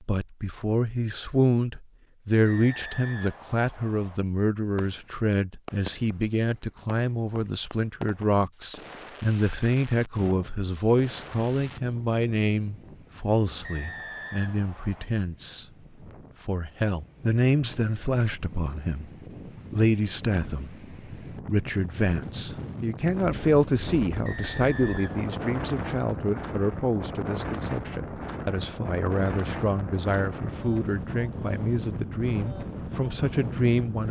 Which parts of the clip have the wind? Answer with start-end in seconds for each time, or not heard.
10.2-34.0.